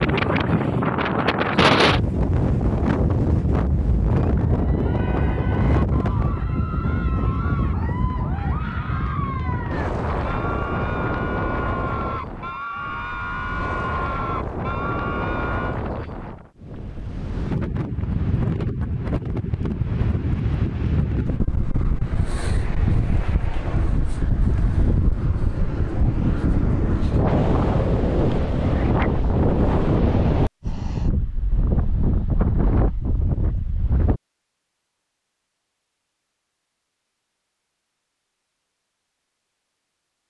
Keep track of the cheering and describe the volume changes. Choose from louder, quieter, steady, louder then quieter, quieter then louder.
louder.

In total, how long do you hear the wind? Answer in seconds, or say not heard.
34 s.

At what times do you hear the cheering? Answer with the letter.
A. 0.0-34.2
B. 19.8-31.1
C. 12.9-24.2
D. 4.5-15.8
D.